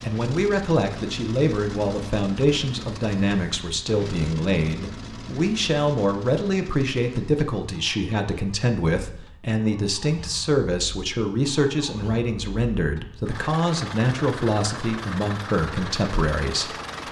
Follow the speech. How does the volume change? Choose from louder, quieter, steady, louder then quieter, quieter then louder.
steady.